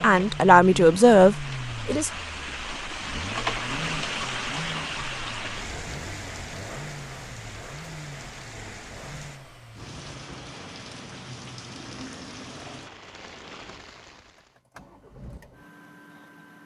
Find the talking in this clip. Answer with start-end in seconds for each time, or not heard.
0.0-2.1.